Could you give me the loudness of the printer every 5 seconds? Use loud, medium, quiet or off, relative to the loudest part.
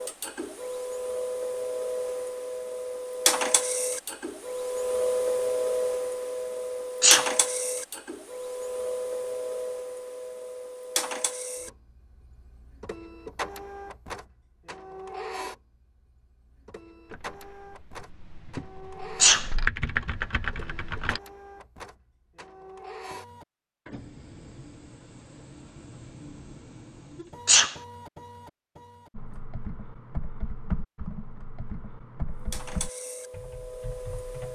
loud, loud, medium, quiet, quiet, quiet, medium.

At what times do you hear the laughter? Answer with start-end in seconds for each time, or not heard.
not heard.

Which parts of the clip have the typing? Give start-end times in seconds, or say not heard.
17.1-21.2, 29.1-34.4.